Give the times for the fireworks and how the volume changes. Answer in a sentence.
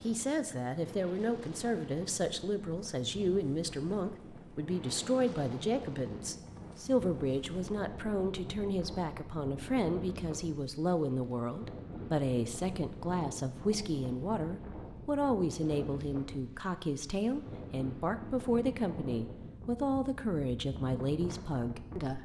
You can't hear the fireworks here.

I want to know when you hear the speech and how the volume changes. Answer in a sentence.
The speech can be heard from 0.0 to 22.1 s, at a steady volume.